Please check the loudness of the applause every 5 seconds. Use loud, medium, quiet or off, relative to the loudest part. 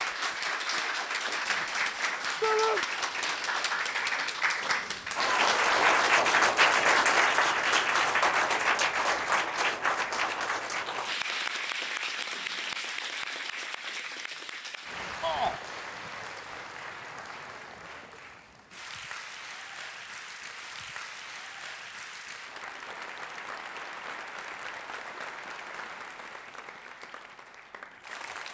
medium, loud, medium, quiet, quiet, quiet.